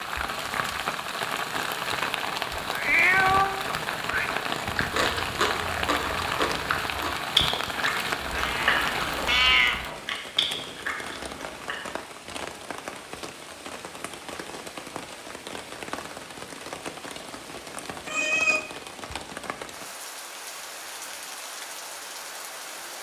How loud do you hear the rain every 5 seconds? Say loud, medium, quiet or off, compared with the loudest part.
loud, loud, medium, medium, medium.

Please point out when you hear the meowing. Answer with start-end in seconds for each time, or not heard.
2.7-4.3, 8.3-9.8, 18.1-18.6.